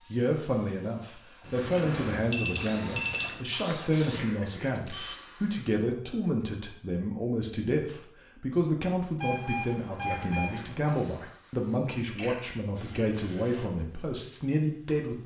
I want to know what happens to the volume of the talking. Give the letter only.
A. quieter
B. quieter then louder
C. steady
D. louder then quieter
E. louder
C.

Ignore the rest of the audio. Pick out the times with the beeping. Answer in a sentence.
You can hear the beeping from 1.4 to 3.4 s and from 9.2 to 10.9 s.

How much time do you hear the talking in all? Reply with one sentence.
The talking can be heard for 15 seconds in total.